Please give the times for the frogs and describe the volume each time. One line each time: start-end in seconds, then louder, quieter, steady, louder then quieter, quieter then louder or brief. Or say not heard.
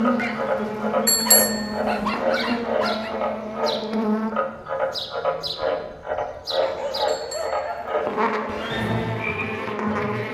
0.0-10.2 steady.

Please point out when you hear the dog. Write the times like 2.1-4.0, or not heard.
0.1-3.1, 6.5-8.5.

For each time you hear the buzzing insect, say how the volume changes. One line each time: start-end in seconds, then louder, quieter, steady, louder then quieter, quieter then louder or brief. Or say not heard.
0.0-4.4 steady
7.8-10.2 brief.